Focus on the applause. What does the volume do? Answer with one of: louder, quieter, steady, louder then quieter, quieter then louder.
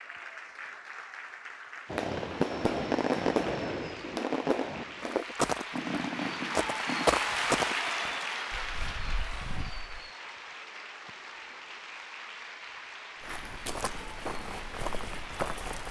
louder then quieter.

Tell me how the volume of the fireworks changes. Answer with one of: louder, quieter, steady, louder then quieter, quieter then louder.
quieter.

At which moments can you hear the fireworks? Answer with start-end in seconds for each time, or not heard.
1.9-7.0.